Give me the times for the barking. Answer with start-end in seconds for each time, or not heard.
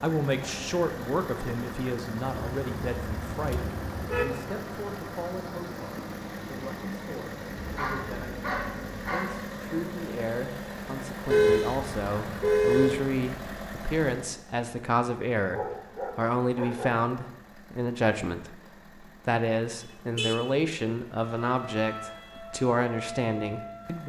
7.5-9.4, 15.5-16.9.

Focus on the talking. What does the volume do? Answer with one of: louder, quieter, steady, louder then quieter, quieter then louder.
quieter then louder.